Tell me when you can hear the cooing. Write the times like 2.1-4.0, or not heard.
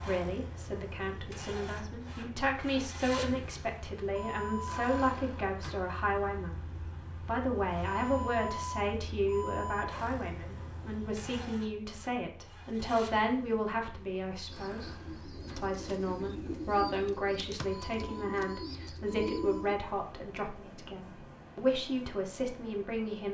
14.5-19.8.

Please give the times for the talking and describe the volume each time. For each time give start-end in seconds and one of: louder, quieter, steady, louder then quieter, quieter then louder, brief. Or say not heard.
0.1-23.3 steady.